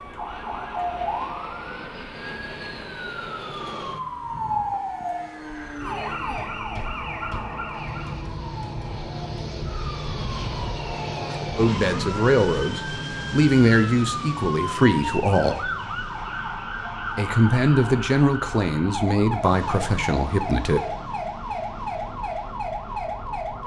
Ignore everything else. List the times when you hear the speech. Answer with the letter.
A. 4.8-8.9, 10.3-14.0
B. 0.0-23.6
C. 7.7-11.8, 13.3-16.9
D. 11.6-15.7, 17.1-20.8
D.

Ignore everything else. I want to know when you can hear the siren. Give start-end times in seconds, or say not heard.
0.0-23.6.